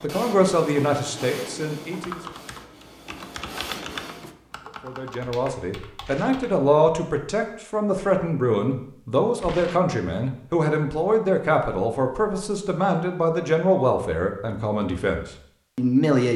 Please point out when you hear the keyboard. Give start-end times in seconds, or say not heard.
2.0-6.6.